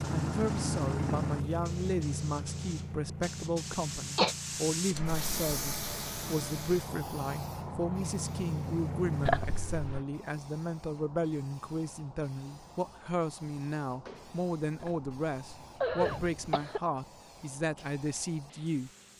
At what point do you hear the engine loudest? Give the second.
1 s.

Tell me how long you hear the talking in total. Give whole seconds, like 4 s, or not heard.
19 s.